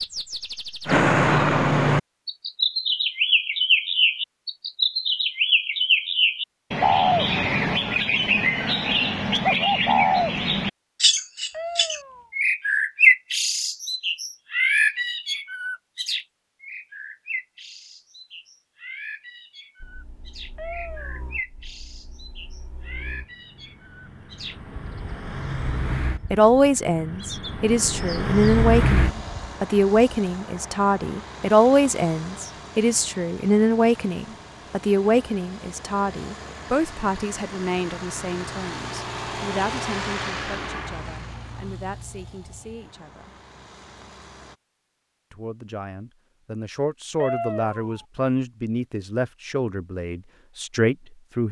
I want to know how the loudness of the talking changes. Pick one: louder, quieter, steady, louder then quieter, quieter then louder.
quieter then louder.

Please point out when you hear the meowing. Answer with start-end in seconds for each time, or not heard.
11.5-12.3, 20.6-21.3, 47.2-48.0.